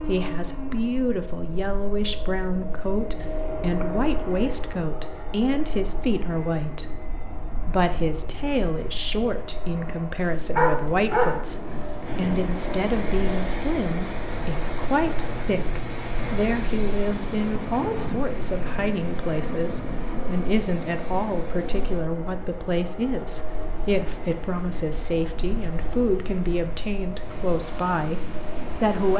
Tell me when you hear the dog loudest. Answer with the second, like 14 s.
11 s.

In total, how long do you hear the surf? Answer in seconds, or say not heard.
17 s.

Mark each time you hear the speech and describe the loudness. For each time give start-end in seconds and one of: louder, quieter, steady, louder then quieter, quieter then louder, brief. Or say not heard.
0.1-29.1 steady.